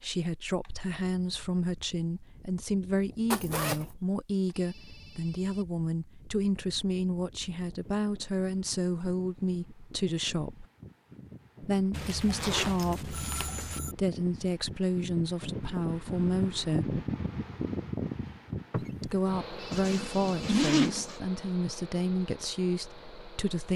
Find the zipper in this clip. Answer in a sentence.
You can hear the zipper from 3.3 to 3.9 s, from 11.9 to 13.8 s and from 19.7 to 21.2 s.